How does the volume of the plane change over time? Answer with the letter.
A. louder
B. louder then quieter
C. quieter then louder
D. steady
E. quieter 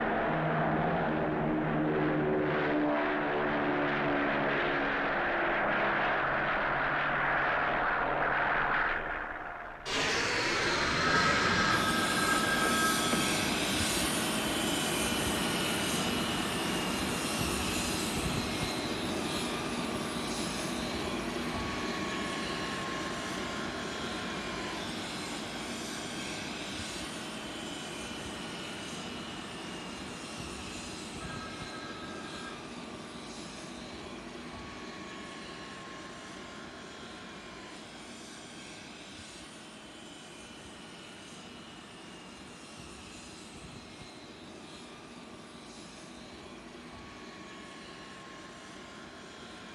E.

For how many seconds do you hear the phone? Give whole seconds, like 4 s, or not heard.
4 s.